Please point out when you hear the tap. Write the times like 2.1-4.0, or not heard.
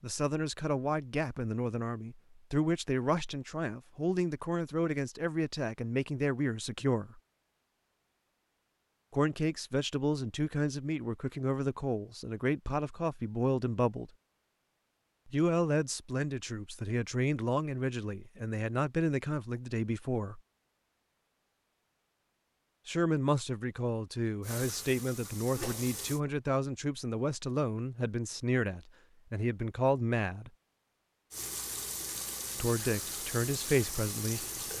24.4-26.2, 31.3-34.7.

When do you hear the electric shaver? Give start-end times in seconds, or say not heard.
not heard.